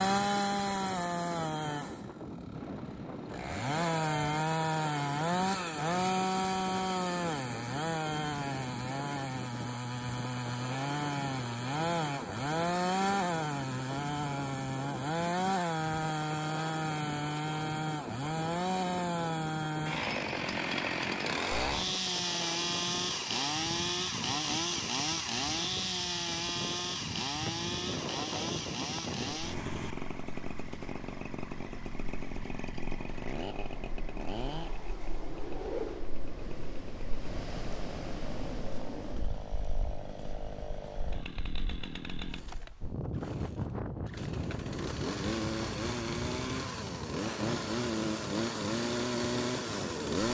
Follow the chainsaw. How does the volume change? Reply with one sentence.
The loudness of the chainsaw goes down, then up.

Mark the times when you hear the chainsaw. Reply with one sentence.
The chainsaw can be heard from 0.0 to 50.2 s.